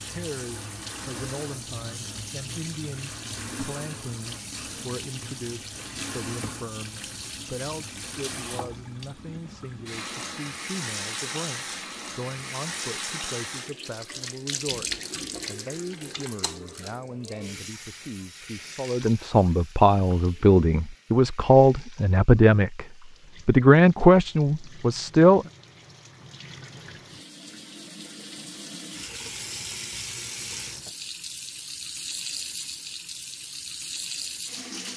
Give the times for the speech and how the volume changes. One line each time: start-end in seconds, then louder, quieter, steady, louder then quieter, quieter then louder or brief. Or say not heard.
0.0-22.9 louder
23.4-25.4 brief.